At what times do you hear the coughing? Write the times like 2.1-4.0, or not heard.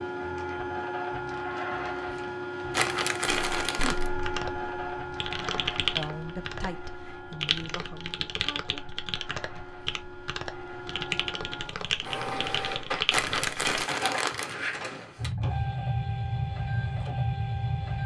not heard.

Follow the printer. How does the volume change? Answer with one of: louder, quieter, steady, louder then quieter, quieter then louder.
quieter then louder.